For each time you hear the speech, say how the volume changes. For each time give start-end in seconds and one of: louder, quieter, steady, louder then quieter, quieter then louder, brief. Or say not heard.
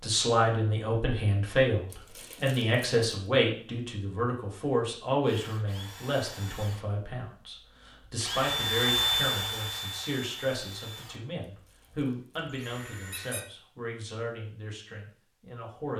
0.0-15.9 quieter.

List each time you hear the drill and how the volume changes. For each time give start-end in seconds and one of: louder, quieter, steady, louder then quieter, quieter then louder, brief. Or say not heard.
5.2-13.4 louder then quieter.